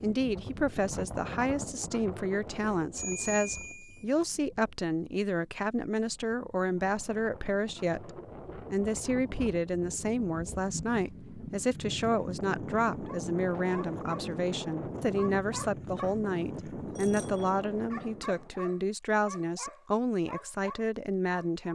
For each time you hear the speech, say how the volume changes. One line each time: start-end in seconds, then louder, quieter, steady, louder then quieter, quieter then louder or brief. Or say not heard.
0.0-21.7 steady.